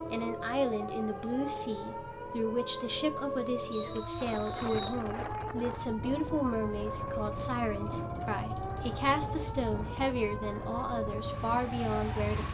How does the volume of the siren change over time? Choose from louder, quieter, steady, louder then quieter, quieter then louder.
steady.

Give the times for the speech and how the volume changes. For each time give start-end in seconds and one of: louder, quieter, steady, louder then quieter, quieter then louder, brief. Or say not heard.
0.1-12.4 steady.